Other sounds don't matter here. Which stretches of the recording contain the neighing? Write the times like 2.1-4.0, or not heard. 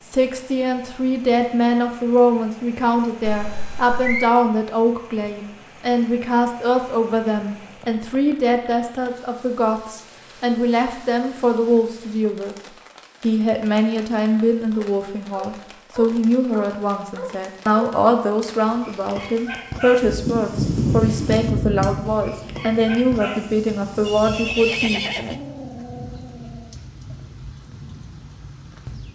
3.2-4.3, 24.1-25.4.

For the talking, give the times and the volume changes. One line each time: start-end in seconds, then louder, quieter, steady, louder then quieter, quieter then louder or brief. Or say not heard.
0.0-12.6 steady
13.2-25.1 steady.